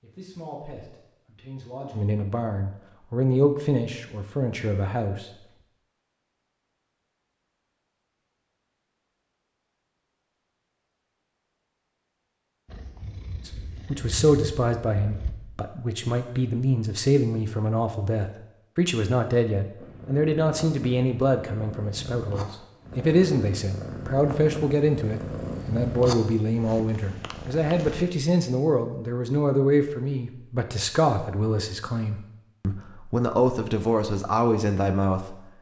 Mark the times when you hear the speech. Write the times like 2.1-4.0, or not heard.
0.0-5.3, 13.4-35.4.